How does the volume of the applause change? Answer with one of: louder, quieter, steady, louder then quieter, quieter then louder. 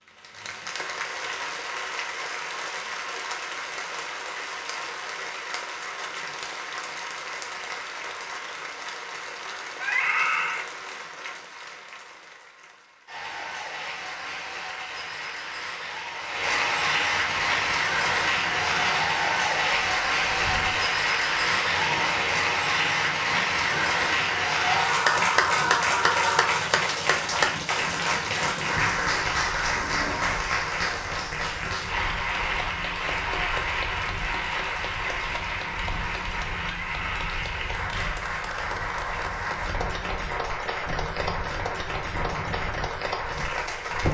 louder then quieter.